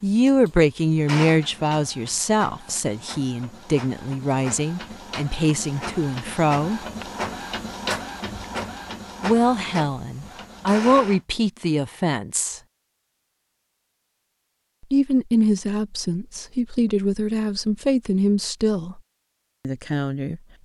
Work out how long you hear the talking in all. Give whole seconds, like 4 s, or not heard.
15 s.